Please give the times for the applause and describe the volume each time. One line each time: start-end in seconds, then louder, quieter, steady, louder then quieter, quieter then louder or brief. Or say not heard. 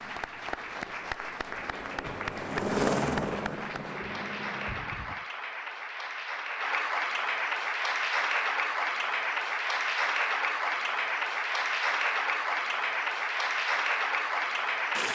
0.0-15.1 louder.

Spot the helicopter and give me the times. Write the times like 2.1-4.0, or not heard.
1.4-5.2.